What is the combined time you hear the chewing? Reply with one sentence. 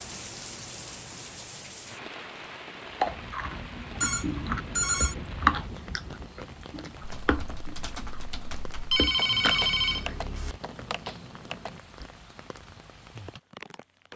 The chewing can be heard for 8 seconds in total.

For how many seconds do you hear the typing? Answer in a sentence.
The typing can be heard for 5 seconds in total.